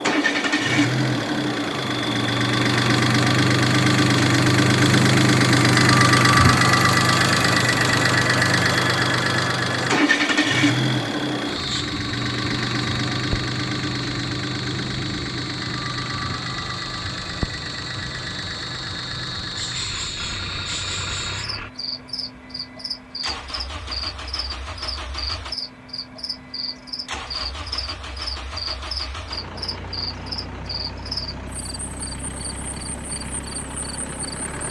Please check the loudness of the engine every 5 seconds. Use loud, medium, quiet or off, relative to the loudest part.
loud, loud, medium, quiet, quiet, quiet, quiet.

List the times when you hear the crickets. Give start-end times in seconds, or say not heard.
0.0-34.5.